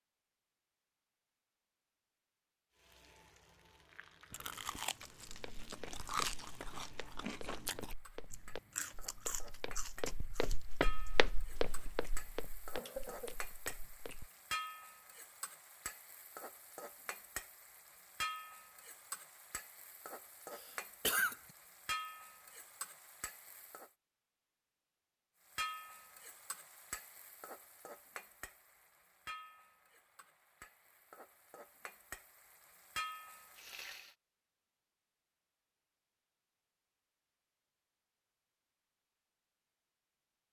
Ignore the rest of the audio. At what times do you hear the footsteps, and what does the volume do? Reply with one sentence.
You can hear the footsteps from 5.2 to 14.3 s, getting louder then quieter.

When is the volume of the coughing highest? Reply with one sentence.
The volume of the coughing peaks at 21 seconds.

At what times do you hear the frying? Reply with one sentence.
The frying can be heard from 2.7 to 23.9 s and from 25.4 to 34.1 s.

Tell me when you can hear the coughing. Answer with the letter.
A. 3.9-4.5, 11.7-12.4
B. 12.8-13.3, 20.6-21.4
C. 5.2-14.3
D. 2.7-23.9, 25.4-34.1
B.